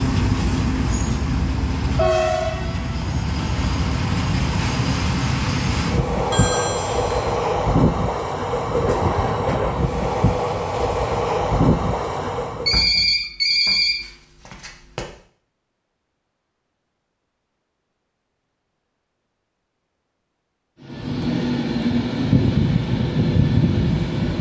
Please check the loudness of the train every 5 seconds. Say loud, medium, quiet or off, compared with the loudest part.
loud, loud, loud, off, loud.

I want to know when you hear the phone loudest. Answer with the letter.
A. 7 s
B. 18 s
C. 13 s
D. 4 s
C.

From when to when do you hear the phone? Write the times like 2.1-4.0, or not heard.
6.3-7.4, 12.7-15.1.